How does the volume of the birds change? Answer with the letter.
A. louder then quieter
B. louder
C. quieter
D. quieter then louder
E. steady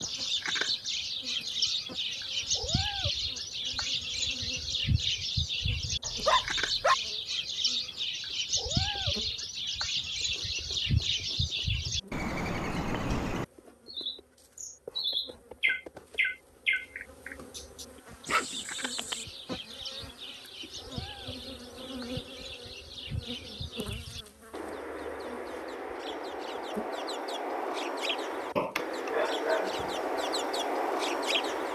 D.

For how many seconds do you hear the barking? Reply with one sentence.
You can hear the barking for 3 seconds altogether.